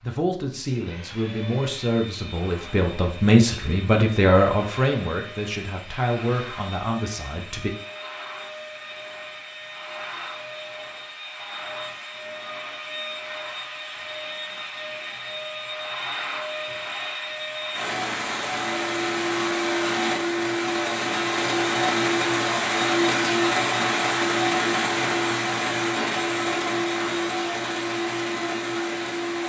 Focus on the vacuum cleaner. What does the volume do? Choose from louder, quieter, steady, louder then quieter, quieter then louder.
louder.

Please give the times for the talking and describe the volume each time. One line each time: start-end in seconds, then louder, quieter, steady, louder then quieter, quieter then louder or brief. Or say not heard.
0.0-7.8 louder then quieter.